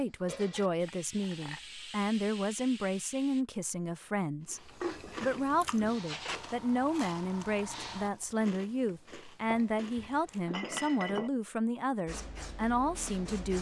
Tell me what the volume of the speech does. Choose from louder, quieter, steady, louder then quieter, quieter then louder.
steady.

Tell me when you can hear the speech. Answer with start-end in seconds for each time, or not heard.
0.0-13.5.